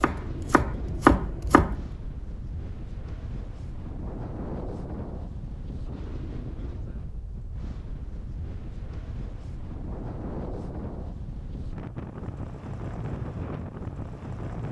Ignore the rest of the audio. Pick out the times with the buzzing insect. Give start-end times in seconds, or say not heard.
not heard.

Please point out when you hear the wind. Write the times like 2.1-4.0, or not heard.
0.0-14.6.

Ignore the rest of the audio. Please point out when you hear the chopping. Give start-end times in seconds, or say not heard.
0.0-1.9.